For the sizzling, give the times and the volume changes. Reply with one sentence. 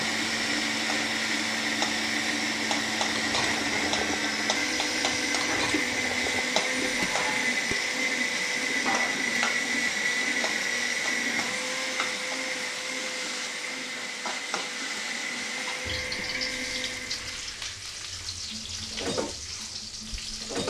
The sizzling can be heard from 0.0 to 20.6 s, at a steady volume.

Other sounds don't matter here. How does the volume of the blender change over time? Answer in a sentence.
The volume of the blender goes down.